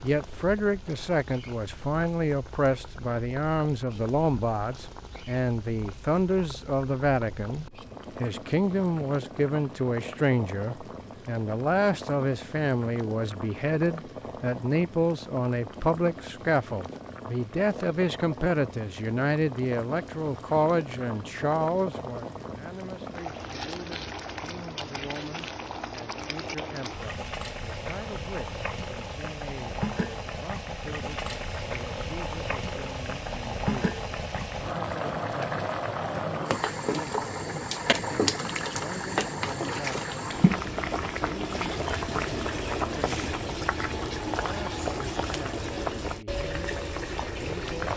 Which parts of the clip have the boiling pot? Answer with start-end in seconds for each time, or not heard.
0.0-47.9.